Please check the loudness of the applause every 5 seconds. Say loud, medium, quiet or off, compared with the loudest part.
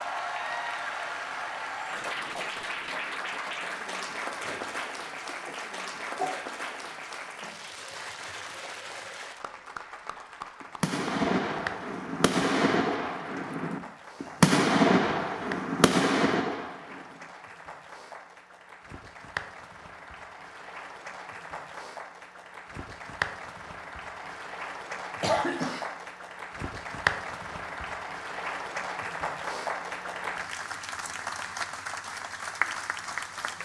loud, medium, medium, medium, medium, loud, loud.